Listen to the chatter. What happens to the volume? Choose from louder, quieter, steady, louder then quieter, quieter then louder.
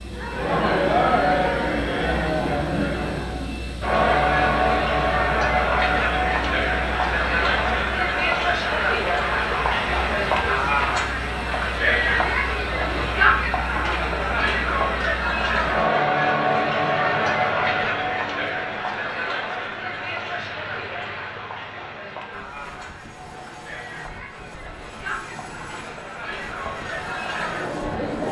quieter.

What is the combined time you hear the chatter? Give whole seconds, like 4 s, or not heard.
28 s.